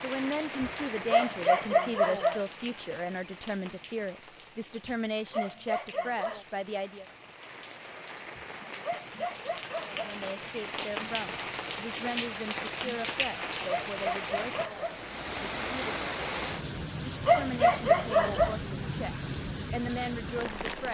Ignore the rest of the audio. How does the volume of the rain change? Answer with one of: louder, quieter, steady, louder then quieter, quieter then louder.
quieter then louder.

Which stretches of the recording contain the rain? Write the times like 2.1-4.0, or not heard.
0.0-20.8.